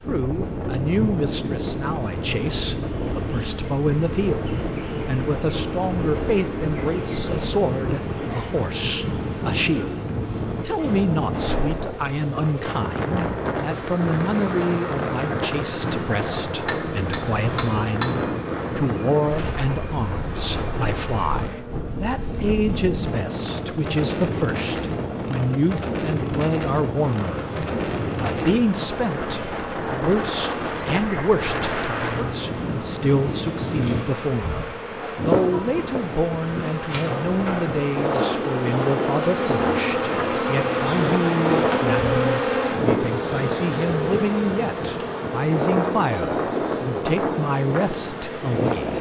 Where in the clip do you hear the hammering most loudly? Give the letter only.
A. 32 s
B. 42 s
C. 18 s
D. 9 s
C.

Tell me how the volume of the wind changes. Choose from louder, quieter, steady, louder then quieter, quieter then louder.
steady.